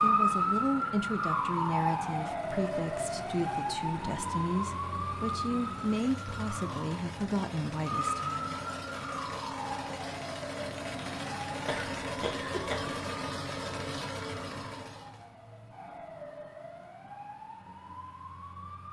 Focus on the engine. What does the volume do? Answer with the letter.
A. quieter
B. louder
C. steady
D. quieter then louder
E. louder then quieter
B.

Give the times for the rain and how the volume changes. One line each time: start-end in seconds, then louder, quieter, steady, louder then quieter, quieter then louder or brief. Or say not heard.
not heard.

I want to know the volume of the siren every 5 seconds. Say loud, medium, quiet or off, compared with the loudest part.
loud, medium, quiet, quiet.